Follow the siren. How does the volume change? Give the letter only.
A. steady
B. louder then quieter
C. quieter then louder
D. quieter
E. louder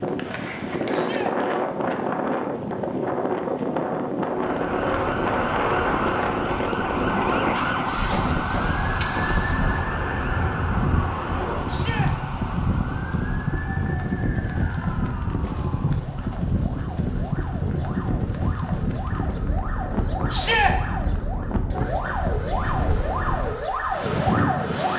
C.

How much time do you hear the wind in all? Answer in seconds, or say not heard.
25 s.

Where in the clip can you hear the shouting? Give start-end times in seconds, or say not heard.
0.9-1.4, 11.7-12.1, 20.3-20.8.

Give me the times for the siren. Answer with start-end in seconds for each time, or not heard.
4.3-24.9.